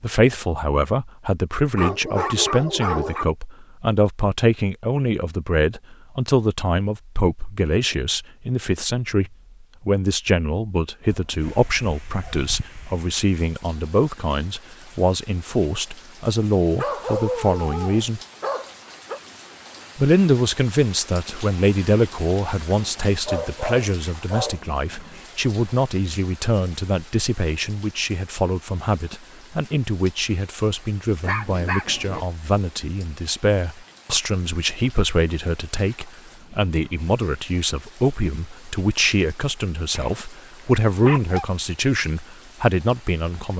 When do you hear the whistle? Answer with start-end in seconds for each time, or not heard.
not heard.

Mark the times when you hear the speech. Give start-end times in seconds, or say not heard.
0.0-18.2, 19.9-43.5.